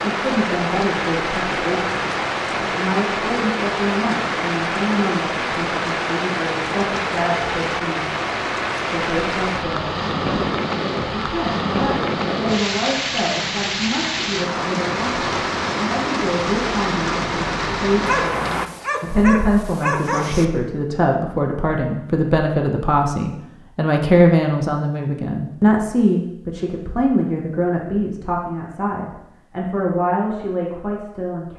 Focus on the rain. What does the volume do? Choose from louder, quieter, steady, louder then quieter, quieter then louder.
steady.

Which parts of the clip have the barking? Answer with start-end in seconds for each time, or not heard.
18.1-20.4.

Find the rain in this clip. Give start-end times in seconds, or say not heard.
0.0-18.7.